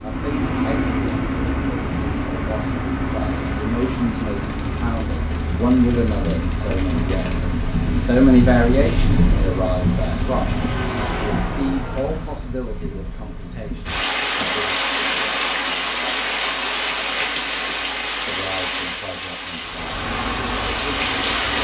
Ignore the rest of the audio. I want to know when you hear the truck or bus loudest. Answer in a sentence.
The loudest moment of the truck or bus is at 1 second.